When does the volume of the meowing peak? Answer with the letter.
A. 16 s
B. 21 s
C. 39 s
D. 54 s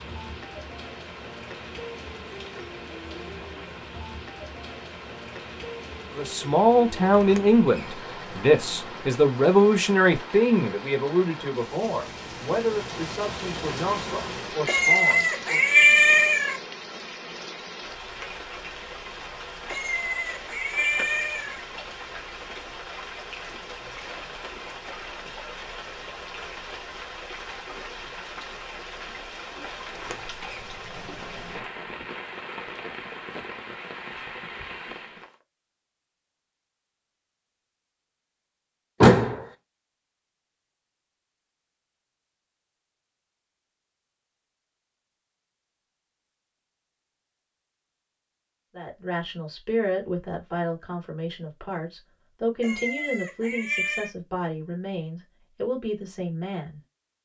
A.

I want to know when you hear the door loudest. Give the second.
39 s.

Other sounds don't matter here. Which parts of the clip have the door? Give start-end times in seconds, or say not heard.
7.1-9.0, 29.9-31.7, 39.0-39.5.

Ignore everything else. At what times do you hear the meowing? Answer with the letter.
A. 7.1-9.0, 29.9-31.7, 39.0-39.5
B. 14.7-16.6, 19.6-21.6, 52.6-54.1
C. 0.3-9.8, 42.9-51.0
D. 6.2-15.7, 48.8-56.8
B.